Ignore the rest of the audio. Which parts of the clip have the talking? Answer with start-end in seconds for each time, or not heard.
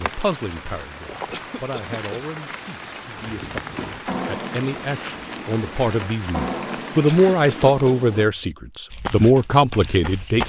0.0-10.4.